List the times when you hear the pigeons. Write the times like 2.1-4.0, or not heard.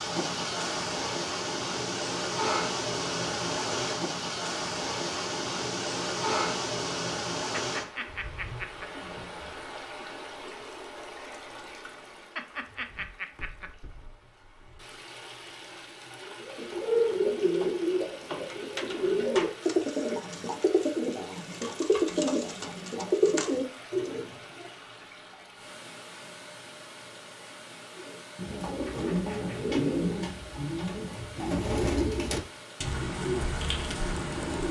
16.2-24.7, 27.9-34.6.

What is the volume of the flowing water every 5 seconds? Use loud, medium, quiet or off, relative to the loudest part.
loud, loud, quiet, quiet, quiet, quiet, quiet.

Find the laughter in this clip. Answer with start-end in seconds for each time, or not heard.
7.5-8.9, 12.3-13.7, 28.9-29.6.